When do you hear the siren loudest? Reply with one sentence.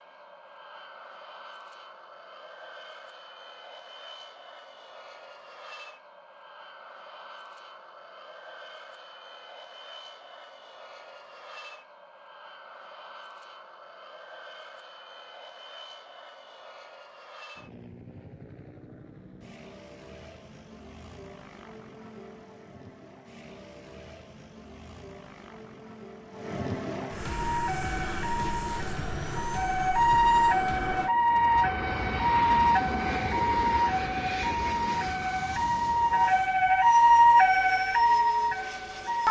The loudest moment of the siren is at 37 seconds.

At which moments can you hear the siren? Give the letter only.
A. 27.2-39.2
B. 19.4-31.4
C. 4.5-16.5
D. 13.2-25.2
A.